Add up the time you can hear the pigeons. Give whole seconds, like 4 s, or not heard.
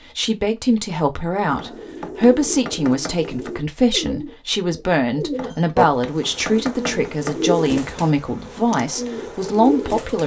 9 s.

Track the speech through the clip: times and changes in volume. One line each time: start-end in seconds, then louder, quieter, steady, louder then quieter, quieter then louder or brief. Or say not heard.
0.0-10.2 steady.